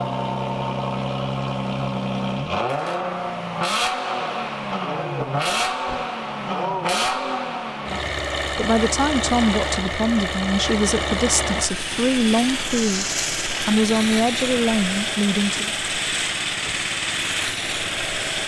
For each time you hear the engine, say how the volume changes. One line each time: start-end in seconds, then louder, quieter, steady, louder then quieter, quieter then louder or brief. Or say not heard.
0.0-18.4 steady.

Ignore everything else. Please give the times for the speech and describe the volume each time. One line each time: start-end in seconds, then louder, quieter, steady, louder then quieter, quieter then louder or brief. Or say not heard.
8.6-15.7 steady.